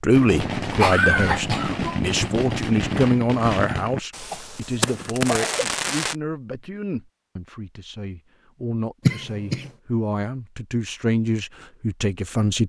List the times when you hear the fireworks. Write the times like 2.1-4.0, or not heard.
0.1-6.2.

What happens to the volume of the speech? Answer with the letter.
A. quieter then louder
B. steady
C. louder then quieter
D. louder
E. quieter
A.